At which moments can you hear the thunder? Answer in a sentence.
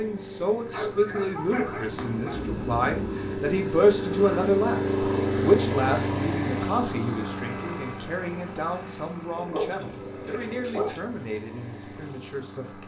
The thunder can be heard from 1.7 to 3.4 s.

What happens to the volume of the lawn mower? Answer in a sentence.
The volume of the lawn mower goes up, then down.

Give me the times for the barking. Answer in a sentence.
You can hear the barking from 0.7 to 2.5 s and from 9.3 to 11.0 s.